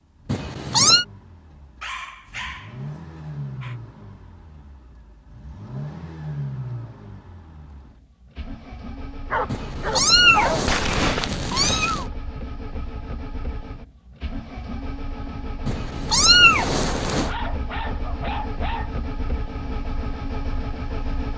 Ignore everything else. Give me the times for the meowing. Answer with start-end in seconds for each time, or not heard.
0.2-1.1, 9.5-12.1, 15.7-17.3.